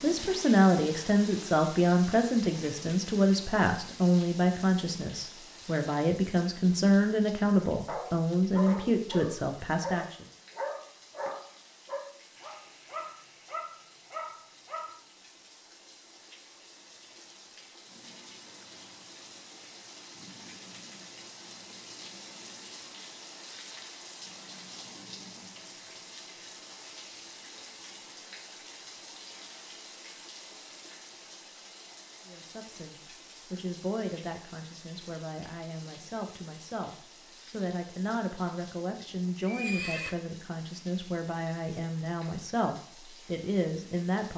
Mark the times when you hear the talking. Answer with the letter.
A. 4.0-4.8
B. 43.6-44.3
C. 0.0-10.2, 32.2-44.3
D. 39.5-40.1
C.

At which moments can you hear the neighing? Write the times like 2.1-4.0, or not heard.
39.5-40.1.